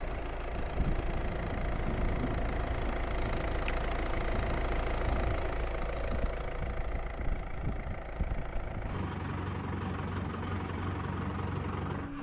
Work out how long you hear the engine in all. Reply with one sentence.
The engine can be heard for 12 seconds in total.